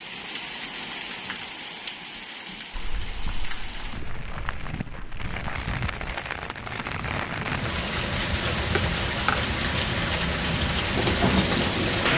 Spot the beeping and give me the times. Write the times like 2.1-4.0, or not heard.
not heard.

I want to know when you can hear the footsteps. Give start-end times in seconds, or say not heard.
2.7-5.3.